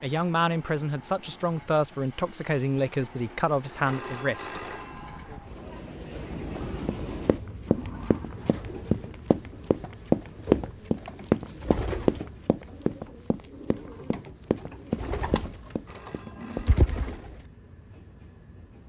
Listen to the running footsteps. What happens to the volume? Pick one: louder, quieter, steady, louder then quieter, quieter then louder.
louder then quieter.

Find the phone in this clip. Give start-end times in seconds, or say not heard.
3.9-5.3, 15.8-17.1.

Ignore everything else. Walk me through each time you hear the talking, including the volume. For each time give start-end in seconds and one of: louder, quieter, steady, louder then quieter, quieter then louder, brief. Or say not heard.
0.0-4.6 steady.